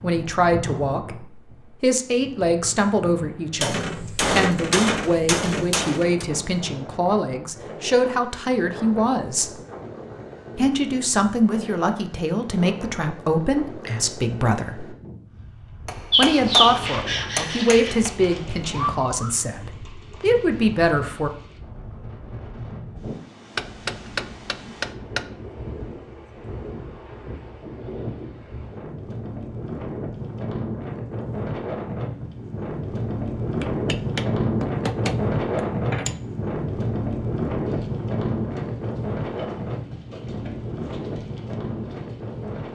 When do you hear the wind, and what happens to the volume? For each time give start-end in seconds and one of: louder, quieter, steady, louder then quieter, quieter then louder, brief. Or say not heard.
0.0-42.7 louder.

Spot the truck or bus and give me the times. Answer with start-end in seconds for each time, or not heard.
not heard.